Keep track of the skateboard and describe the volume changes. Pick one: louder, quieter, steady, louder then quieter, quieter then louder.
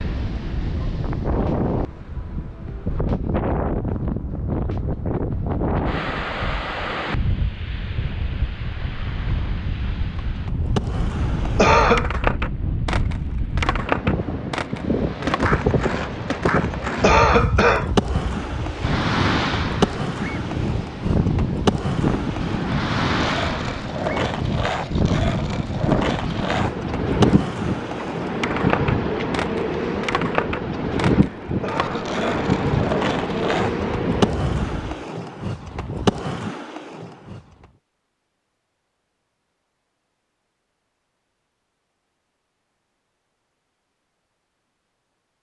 steady.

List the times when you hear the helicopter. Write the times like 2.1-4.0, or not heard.
not heard.